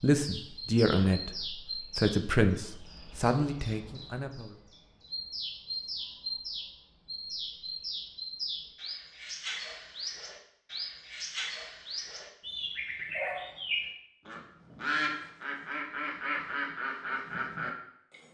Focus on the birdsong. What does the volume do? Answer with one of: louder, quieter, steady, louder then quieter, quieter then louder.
louder.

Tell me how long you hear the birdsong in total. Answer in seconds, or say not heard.
18 s.